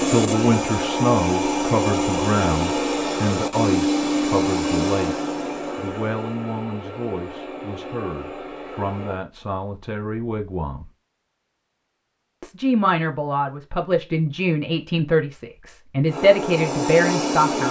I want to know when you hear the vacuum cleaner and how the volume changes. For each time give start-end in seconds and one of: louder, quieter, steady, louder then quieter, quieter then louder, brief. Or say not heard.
0.0-9.2 quieter
16.1-17.6 brief.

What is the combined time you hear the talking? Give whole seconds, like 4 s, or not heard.
16 s.